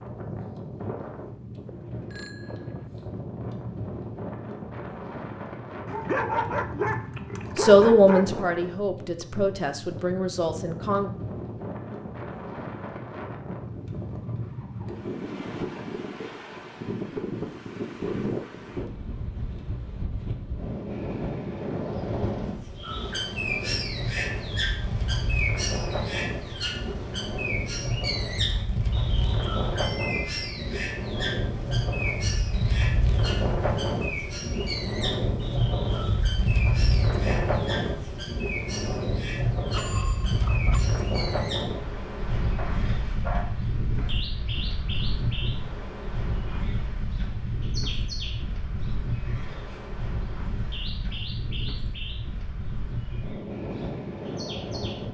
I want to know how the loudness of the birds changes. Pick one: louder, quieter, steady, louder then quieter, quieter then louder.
quieter.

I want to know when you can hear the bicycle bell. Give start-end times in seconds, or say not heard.
1.6-2.9, 29.8-30.3, 39.7-40.9.